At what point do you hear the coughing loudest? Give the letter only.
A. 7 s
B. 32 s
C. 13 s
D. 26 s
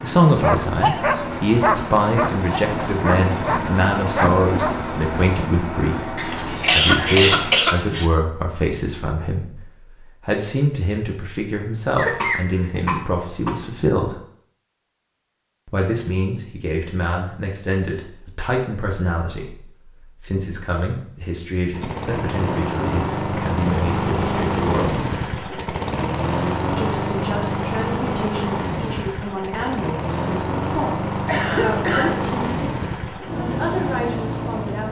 A.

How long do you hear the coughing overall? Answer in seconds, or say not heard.
5 s.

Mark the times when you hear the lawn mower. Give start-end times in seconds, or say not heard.
0.0-7.7, 21.7-34.8.